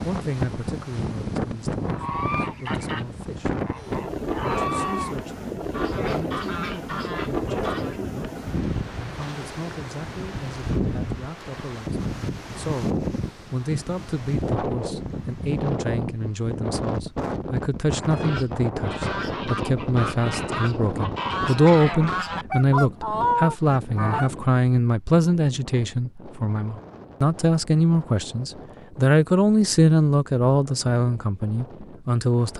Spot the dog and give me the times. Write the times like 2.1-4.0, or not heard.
not heard.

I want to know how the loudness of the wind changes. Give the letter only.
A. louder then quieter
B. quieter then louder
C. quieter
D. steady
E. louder
C.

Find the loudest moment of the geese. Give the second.
23 s.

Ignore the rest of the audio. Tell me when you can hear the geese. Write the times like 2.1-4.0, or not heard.
1.8-8.0, 18.1-24.3.